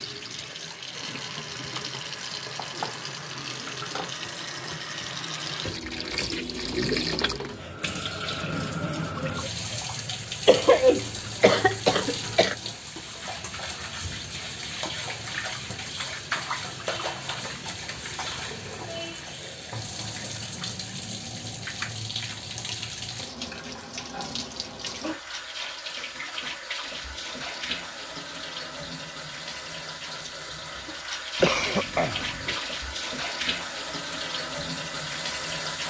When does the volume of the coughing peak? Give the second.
11 s.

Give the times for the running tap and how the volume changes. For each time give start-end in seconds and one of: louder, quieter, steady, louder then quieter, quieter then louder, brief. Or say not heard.
0.0-35.8 steady.